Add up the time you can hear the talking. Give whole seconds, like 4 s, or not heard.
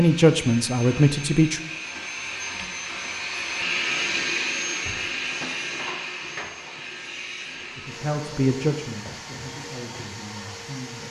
5 s.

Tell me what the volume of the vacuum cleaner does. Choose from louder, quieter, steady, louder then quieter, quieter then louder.
louder then quieter.